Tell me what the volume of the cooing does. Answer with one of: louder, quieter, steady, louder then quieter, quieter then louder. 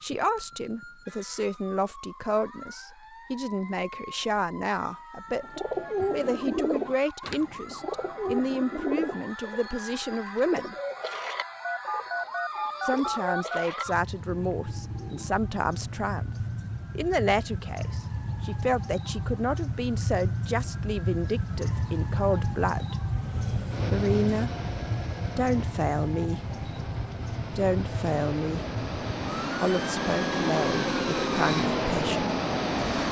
quieter.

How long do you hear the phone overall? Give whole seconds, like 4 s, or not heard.
2 s.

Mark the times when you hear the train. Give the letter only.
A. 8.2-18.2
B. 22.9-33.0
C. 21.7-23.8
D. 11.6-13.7
B.